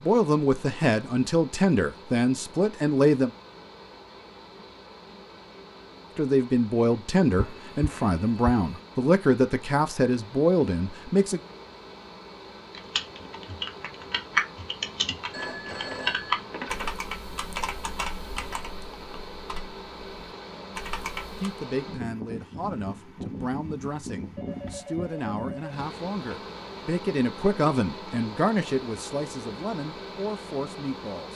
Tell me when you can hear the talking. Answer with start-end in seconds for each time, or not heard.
0.0-3.4, 6.2-11.4, 21.4-31.3.